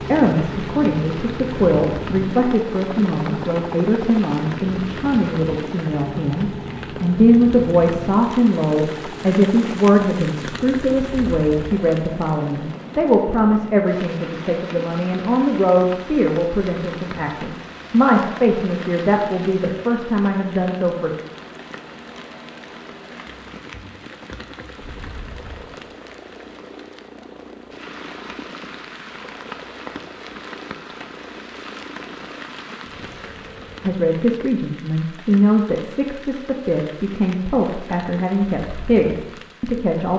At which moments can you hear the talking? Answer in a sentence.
The talking can be heard from 0.1 to 21.1 s and from 33.8 to 40.1 s.